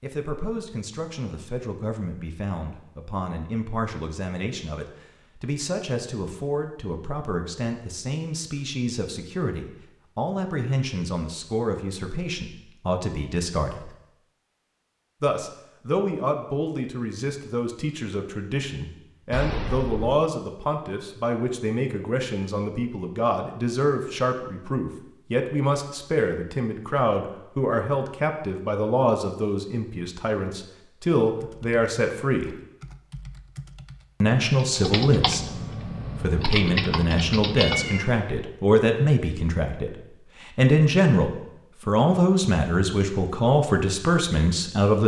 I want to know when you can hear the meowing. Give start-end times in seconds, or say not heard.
19.3-20.1, 37.5-38.5.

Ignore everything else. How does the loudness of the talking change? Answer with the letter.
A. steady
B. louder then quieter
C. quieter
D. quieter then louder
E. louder
E.